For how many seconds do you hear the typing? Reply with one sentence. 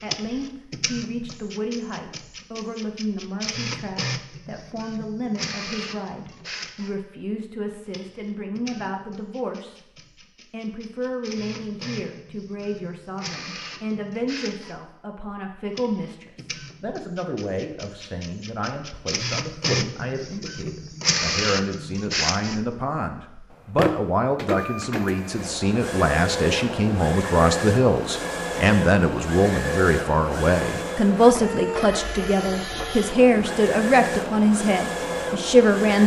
The typing can't be heard in this clip.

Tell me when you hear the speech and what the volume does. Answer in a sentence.
The speech can be heard from 0.0 to 36.0 s, getting louder.